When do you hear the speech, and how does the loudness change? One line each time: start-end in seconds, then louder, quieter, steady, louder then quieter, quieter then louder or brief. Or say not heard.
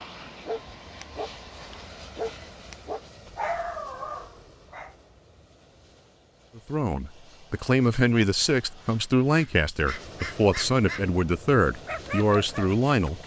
6.5-13.2 steady.